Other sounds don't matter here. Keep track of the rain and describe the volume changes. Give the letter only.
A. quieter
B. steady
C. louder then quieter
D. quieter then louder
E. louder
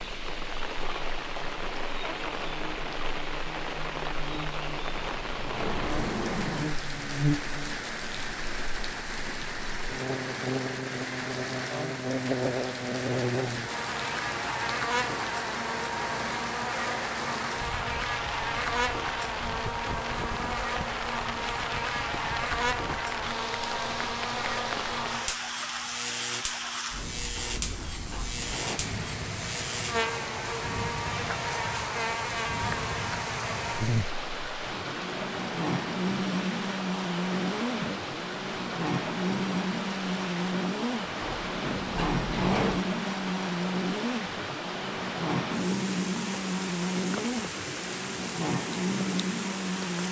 B.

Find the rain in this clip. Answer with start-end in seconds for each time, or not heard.
0.0-50.0.